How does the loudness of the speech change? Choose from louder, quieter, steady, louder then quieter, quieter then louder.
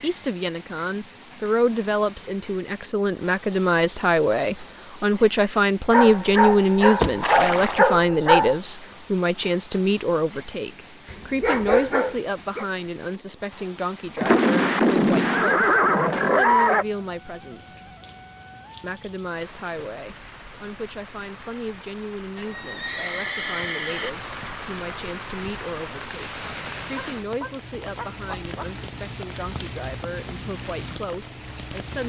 quieter.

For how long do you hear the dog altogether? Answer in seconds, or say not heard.
6 s.